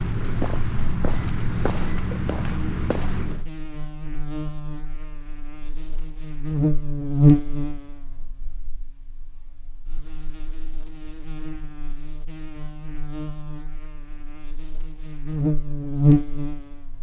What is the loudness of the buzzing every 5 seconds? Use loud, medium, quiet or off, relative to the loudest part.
quiet, loud, quiet, loud.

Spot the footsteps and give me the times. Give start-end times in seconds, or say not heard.
0.0-3.5.